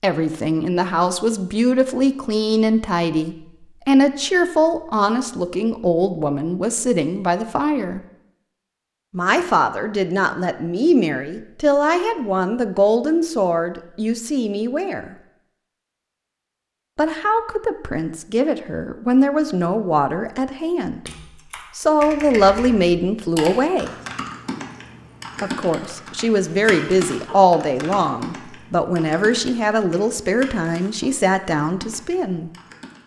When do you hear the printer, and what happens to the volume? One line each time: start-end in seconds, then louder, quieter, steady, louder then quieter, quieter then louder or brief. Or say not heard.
not heard.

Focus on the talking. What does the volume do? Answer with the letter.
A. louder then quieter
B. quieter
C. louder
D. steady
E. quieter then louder
D.